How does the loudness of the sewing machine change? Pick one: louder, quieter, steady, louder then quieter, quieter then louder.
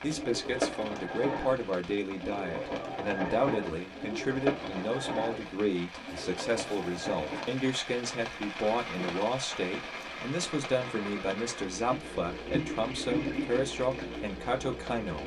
quieter then louder.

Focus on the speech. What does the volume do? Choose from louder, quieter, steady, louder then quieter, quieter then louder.
steady.